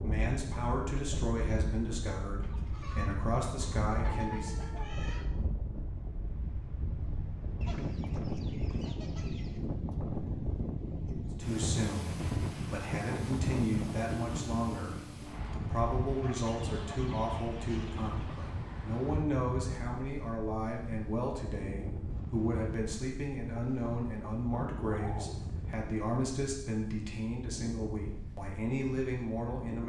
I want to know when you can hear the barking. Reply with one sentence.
The barking can't be heard in this clip.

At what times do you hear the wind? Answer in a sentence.
The wind can be heard from 0.0 to 29.8 s.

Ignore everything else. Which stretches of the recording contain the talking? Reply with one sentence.
The talking can be heard from 0.0 to 4.5 s and from 11.3 to 29.8 s.